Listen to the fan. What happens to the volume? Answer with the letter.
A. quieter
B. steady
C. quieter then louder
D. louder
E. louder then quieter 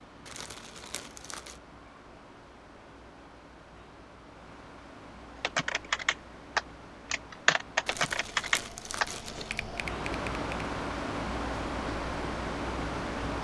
D.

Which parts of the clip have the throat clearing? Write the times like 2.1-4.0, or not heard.
not heard.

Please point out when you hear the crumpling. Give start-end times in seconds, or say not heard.
0.2-1.6, 7.8-9.7.